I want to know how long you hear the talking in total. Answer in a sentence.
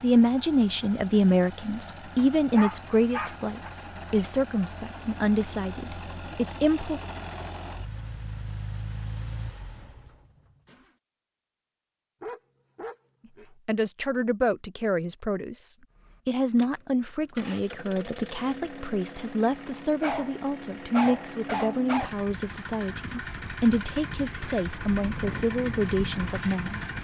The talking can be heard for 20 seconds in total.